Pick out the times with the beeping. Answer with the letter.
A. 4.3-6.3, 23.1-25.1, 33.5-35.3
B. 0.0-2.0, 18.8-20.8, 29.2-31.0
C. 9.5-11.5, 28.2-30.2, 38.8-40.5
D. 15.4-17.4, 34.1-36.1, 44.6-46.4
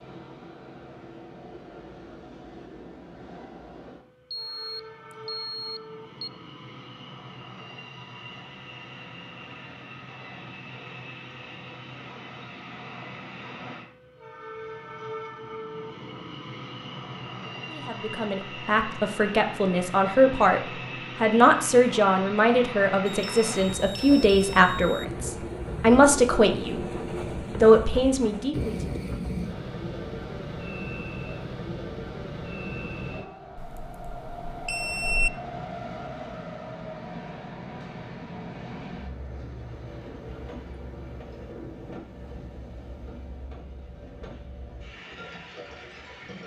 A.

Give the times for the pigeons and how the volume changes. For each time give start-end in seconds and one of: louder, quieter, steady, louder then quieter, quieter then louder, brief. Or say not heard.
not heard.